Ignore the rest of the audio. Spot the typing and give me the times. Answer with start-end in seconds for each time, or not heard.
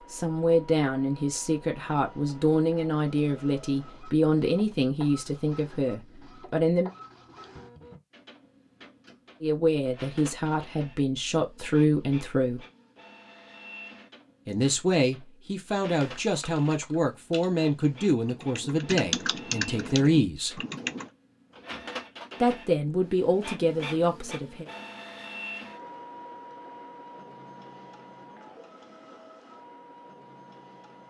15.9-21.1.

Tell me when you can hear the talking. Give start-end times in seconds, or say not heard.
0.1-6.9, 9.4-12.7, 14.4-20.6, 22.4-24.6.